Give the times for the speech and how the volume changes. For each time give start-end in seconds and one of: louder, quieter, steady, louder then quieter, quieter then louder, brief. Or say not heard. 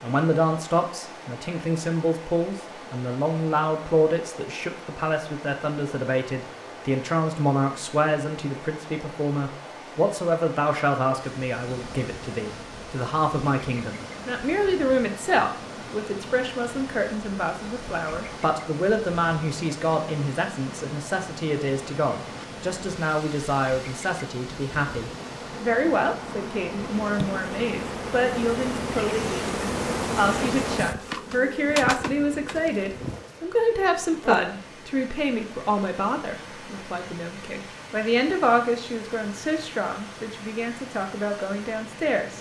0.0-42.3 steady.